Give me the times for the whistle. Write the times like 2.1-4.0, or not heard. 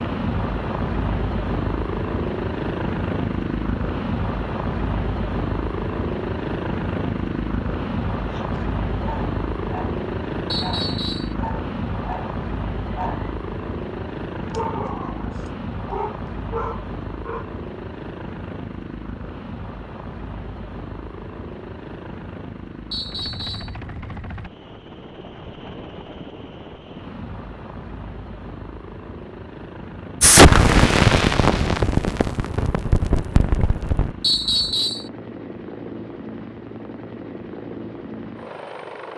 10.5-11.3, 22.9-23.8, 34.2-35.0.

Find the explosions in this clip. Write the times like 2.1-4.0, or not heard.
30.2-34.1.